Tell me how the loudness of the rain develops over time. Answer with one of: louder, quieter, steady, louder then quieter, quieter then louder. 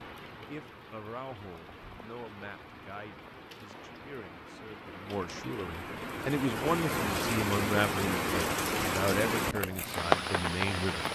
louder.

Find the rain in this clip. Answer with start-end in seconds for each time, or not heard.
0.0-11.0.